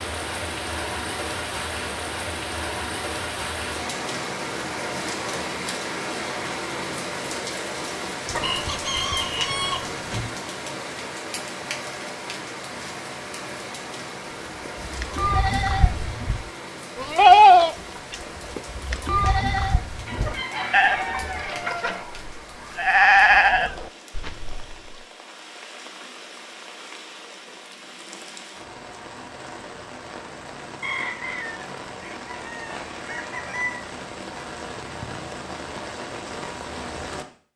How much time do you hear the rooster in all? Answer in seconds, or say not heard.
7 s.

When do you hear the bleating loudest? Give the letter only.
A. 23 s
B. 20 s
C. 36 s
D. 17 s
D.